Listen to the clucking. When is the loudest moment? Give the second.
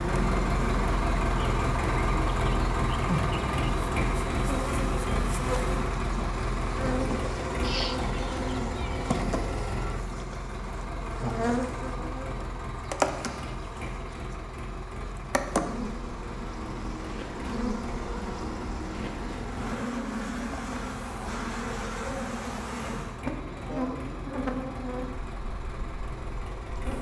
8 s.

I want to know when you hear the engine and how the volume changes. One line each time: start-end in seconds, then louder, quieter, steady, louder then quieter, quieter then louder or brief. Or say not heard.
0.0-26.9 quieter.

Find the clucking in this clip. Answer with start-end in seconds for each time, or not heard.
7.6-9.2.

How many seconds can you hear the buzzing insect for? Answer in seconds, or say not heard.
27 s.